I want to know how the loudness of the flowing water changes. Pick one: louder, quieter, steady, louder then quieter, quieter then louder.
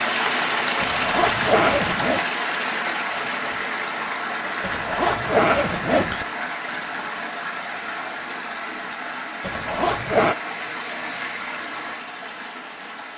quieter.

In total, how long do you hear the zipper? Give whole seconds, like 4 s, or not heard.
4 s.